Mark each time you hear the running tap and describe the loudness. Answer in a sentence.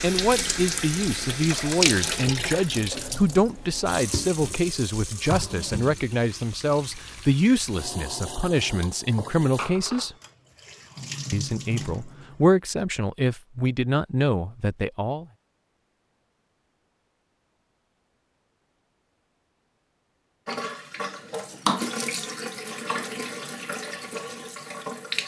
You can hear the running tap from 0.0 to 12.5 s, getting quieter; and from 20.4 to 25.2 s, getting louder then quieter.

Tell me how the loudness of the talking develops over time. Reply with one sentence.
The volume of the talking stays about the same.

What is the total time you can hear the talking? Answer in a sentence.
The talking can be heard for 14 seconds in total.